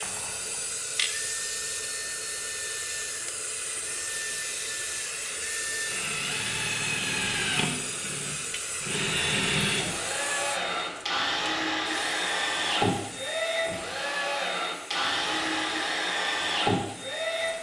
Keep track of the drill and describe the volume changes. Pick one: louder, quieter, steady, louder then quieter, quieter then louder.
louder.